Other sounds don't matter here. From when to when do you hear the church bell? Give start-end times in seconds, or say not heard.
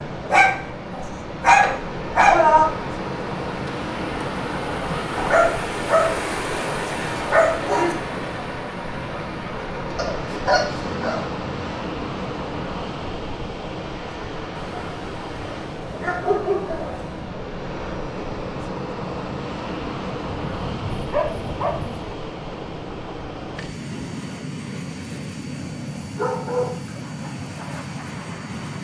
not heard.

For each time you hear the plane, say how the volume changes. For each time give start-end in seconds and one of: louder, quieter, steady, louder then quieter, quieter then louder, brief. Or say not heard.
0.0-28.7 steady.